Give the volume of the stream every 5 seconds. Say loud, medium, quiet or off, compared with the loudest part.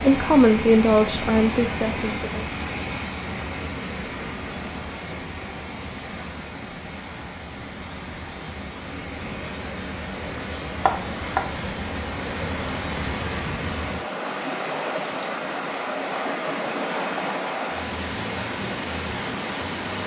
loud, medium, loud, loud.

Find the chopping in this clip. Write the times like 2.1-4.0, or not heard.
10.8-11.6.